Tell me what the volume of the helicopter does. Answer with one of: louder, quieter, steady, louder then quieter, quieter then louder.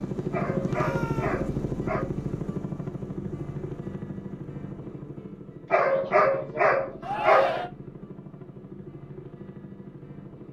quieter.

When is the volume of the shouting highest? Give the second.
7 s.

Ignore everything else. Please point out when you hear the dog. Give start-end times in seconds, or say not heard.
0.3-2.1, 5.7-7.6.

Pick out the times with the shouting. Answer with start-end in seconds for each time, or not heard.
0.7-1.4, 7.0-7.7.